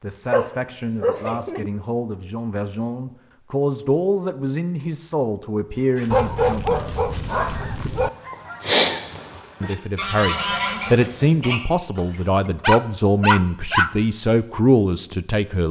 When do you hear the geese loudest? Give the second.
9 s.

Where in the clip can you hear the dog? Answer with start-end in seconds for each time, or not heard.
0.3-1.7, 6.1-8.1, 11.9-13.9.